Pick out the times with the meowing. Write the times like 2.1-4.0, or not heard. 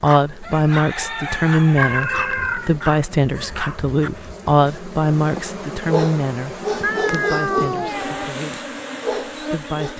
1.8-2.8, 6.8-8.3.